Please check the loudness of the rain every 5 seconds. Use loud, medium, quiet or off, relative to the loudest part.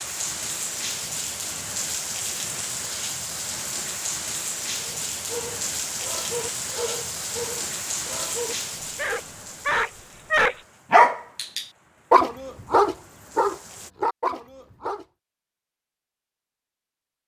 loud, loud, quiet, off.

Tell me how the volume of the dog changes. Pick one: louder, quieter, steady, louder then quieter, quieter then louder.
louder then quieter.